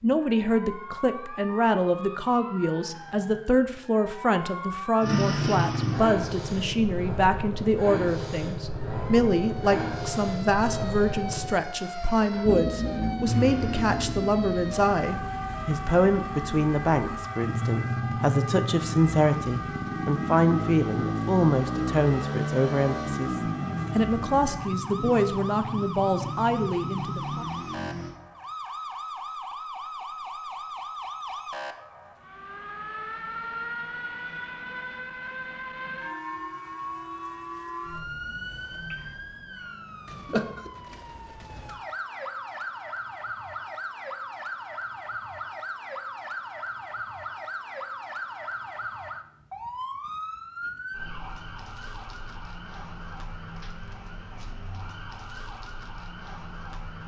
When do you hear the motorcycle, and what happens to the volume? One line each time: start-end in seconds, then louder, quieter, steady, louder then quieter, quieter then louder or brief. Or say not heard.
5.0-28.1 steady.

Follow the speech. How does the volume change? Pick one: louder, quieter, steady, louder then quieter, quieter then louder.
steady.